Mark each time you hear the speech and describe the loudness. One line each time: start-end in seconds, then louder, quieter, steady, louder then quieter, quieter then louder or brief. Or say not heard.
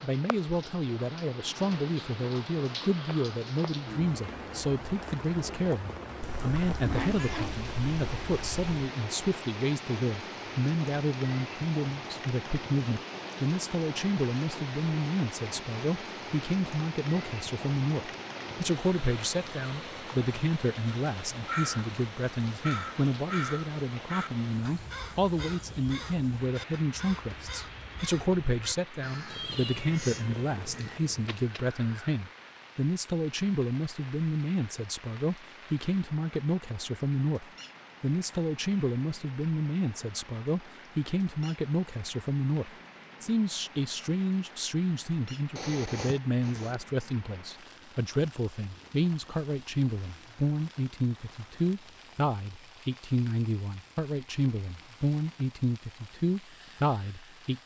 0.0-57.6 steady.